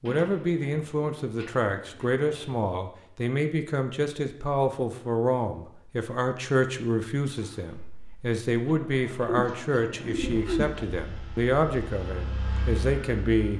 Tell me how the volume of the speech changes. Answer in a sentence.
The volume of the speech stays about the same.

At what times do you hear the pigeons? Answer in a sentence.
You can hear the pigeons from 0.1 to 2.6 s and from 9.2 to 10.8 s.